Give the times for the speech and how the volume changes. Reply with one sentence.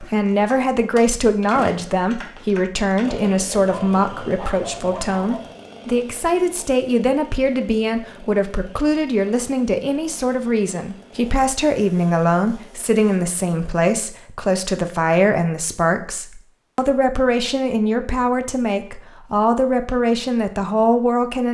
You can hear the speech from 0.0 to 21.4 s, at a steady volume.